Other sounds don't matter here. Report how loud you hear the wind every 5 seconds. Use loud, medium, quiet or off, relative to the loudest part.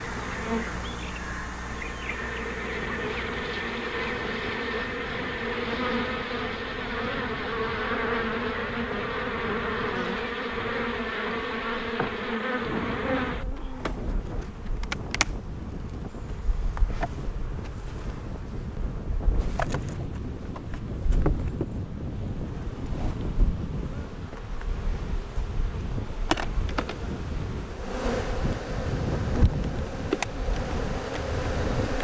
medium, medium, medium, loud, loud, loud, loud.